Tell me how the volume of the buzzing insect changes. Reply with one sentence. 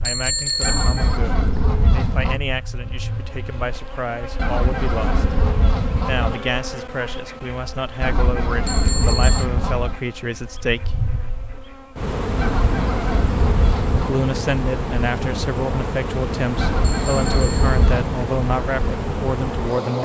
The loudness of the buzzing insect goes up.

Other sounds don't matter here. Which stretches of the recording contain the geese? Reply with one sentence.
You can hear the geese from 0.6 to 2.4 s, from 4.3 to 6.4 s, from 8.0 to 10.0 s, from 12.3 to 14.2 s and from 16.6 to 18.1 s.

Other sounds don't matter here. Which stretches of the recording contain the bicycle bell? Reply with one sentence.
You can hear the bicycle bell from 0.1 to 1.2 s, from 8.7 to 9.4 s and from 16.8 to 17.9 s.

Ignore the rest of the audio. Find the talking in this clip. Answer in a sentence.
You can hear the talking from 0.0 to 5.3 s, from 6.0 to 11.1 s and from 13.9 to 20.0 s.